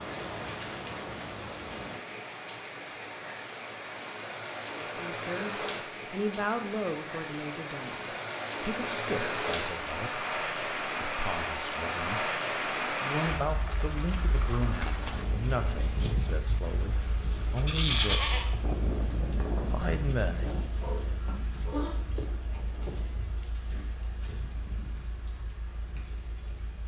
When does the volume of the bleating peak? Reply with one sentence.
The volume of the bleating peaks at 18 seconds.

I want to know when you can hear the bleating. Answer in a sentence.
You can hear the bleating from 17.6 to 23.3 s.